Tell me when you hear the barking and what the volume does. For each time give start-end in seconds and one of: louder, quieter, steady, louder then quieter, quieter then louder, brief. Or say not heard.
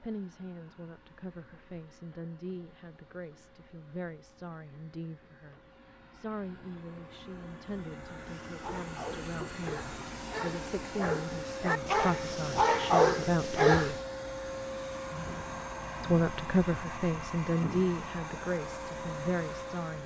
8.1-13.9 louder.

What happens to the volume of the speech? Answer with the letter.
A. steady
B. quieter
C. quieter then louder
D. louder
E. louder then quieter
D.